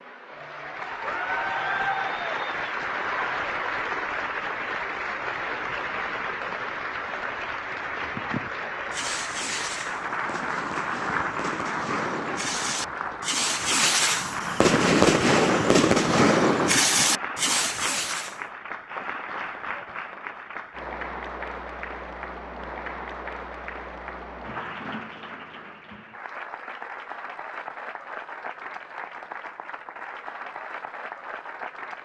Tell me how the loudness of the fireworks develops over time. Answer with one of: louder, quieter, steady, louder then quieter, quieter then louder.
louder.